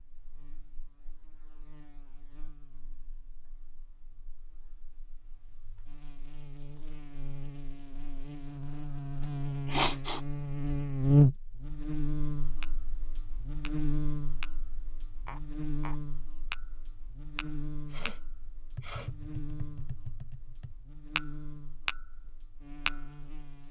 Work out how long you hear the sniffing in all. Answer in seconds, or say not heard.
2 s.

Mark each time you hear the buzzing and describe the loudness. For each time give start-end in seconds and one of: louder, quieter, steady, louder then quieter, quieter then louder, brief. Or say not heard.
0.0-23.6 louder then quieter.